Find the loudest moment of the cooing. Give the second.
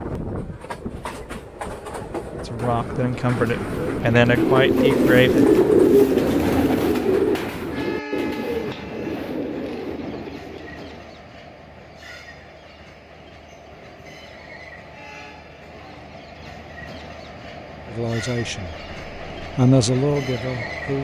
6 s.